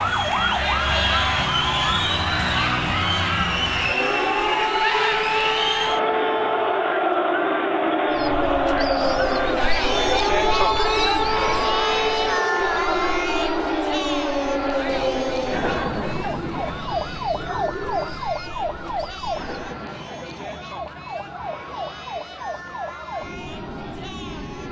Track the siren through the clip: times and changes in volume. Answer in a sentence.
The siren can be heard from 0.0 to 24.6 s, getting quieter.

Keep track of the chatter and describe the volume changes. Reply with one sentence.
The volume of the chatter goes down.